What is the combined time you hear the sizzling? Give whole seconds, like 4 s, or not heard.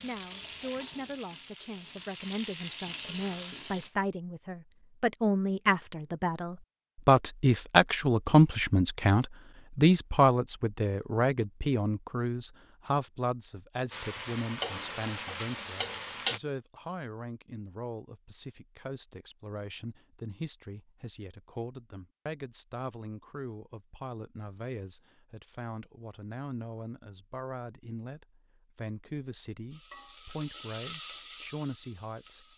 9 s.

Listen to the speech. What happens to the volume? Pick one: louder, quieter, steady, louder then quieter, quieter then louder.
louder then quieter.